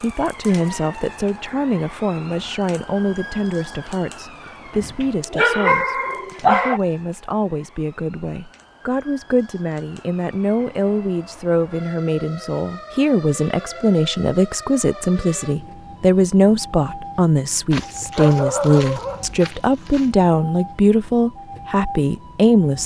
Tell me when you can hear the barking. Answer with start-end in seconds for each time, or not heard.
4.8-6.8, 17.7-20.1.